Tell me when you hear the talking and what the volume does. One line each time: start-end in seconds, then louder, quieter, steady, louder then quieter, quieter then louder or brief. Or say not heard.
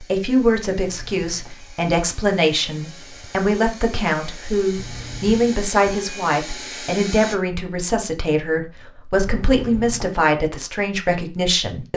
0.0-11.9 steady.